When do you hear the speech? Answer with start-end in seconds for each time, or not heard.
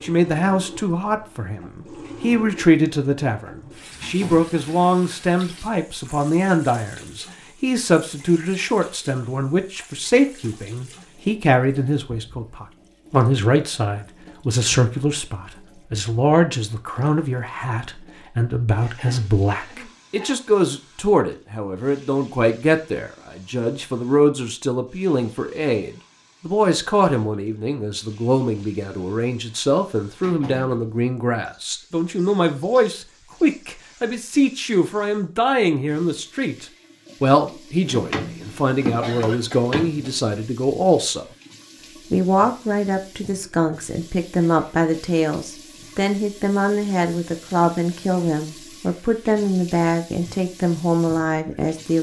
0.0-41.2, 42.1-51.9.